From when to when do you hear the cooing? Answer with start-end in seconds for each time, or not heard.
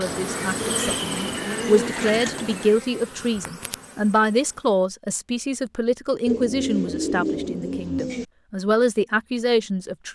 0.1-2.8, 6.2-8.2.